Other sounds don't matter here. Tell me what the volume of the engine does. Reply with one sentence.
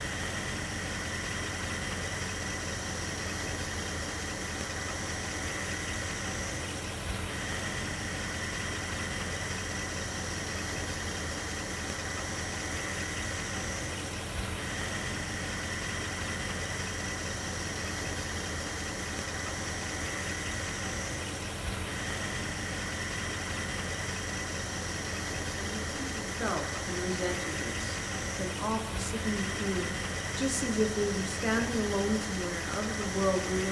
The volume of the engine stays about the same.